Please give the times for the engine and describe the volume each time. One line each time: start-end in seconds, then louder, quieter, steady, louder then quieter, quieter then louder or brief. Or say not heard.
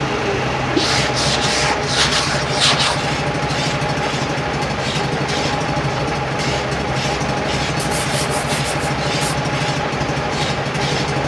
0.0-11.2 steady.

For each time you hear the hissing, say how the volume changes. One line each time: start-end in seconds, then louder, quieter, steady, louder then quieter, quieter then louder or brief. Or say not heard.
0.0-11.2 steady.